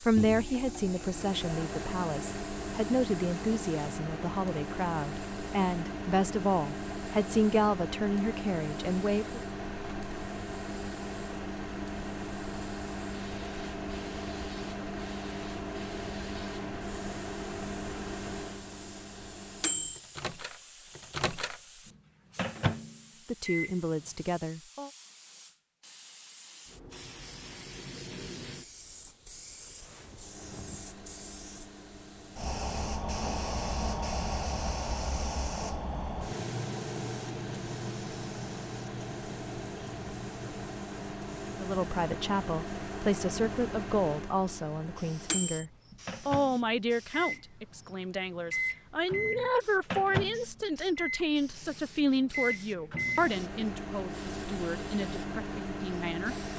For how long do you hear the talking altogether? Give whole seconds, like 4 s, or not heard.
26 s.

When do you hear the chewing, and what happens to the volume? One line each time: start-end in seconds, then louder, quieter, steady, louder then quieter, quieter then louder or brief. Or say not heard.
not heard.